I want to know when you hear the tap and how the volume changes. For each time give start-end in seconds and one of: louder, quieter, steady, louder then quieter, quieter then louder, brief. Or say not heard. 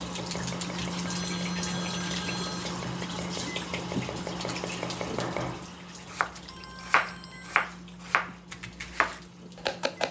0.0-9.8 quieter.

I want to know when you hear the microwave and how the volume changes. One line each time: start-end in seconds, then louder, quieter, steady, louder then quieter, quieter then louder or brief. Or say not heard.
0.0-10.0 quieter.